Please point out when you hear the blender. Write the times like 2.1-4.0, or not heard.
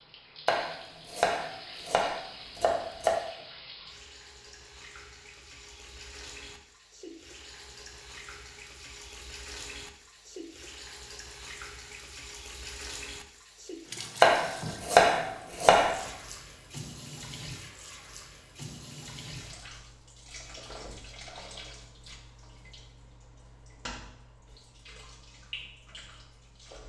not heard.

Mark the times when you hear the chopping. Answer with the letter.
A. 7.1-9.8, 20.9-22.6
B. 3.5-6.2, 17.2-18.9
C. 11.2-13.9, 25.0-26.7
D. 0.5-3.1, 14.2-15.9
D.